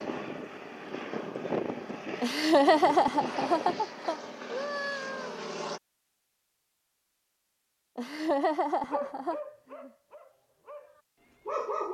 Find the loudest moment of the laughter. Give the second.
3 s.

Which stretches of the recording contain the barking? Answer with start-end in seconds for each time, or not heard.
8.9-11.8.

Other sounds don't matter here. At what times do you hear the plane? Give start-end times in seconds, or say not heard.
0.0-5.8.